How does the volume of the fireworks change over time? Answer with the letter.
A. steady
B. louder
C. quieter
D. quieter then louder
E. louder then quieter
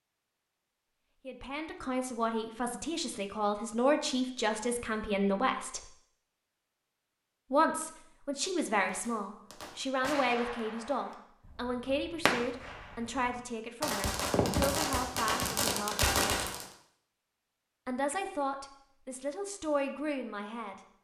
D.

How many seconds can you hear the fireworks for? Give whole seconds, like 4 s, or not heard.
8 s.